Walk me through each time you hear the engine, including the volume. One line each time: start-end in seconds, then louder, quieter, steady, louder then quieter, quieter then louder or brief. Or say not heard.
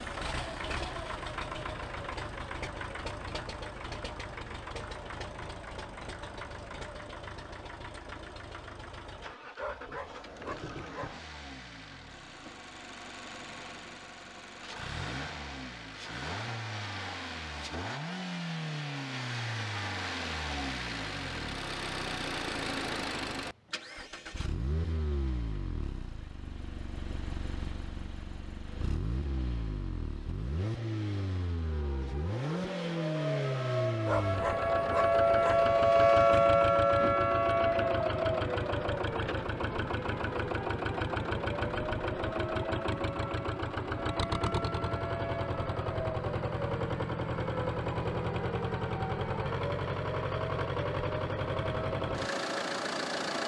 0.0-53.4 louder.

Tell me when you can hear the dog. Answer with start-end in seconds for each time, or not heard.
9.6-11.2, 34.0-35.6.